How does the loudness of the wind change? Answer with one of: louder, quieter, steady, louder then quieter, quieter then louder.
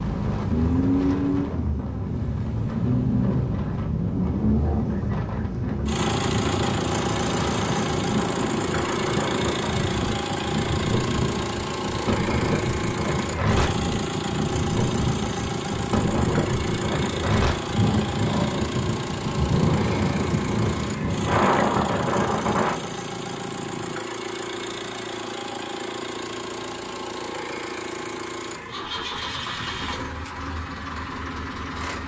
louder.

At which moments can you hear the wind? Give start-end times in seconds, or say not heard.
0.0-22.9.